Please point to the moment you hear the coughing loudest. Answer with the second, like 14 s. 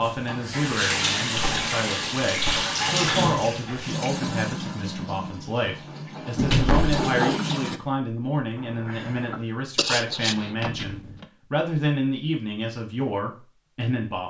10 s.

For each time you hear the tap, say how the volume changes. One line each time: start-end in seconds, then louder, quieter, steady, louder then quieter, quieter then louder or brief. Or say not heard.
0.0-7.8 quieter then louder.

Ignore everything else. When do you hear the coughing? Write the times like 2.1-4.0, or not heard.
8.6-10.6.